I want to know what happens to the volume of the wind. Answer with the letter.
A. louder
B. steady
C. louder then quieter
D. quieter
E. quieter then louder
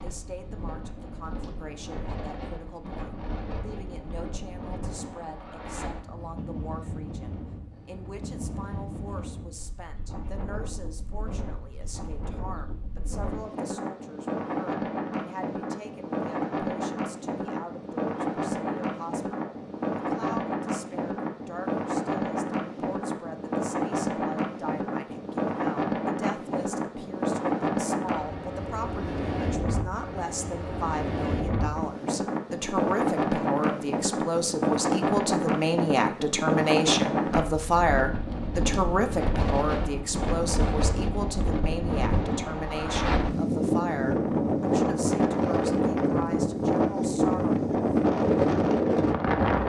A.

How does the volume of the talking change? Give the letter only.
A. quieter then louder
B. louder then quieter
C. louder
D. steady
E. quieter
C.